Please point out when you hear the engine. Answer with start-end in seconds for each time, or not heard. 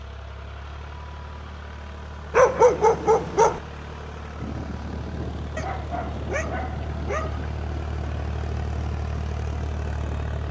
0.0-10.4.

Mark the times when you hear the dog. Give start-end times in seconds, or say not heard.
2.3-3.6, 5.5-7.4.